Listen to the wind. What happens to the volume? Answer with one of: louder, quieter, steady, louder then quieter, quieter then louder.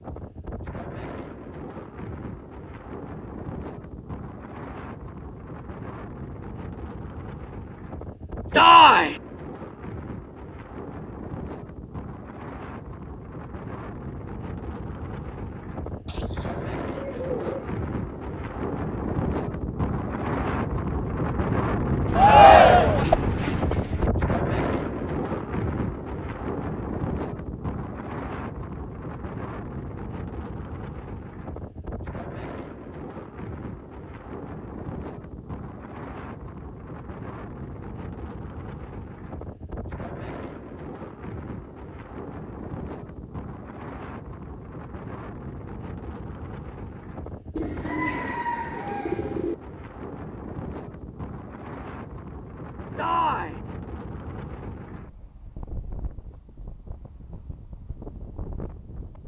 louder then quieter.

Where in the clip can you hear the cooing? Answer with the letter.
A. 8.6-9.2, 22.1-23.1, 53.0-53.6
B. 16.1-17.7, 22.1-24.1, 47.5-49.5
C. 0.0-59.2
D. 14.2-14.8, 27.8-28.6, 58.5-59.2
B.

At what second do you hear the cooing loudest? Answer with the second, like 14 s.
23 s.